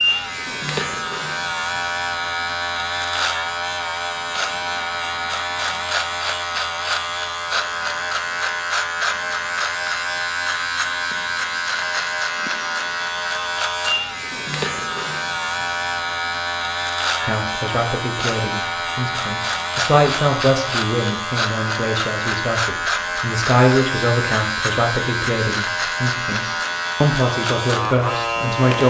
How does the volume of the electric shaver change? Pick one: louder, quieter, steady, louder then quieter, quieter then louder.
steady.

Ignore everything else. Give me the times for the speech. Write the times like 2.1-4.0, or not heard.
17.2-28.8.